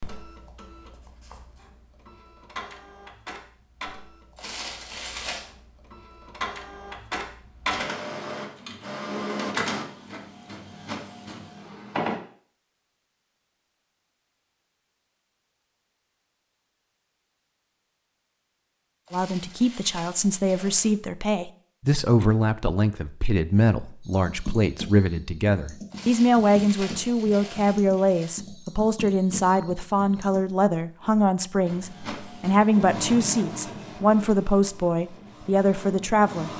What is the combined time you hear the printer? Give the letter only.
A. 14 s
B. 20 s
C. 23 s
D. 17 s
D.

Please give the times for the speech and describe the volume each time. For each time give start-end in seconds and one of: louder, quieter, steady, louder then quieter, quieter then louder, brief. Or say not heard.
19.1-36.5 steady.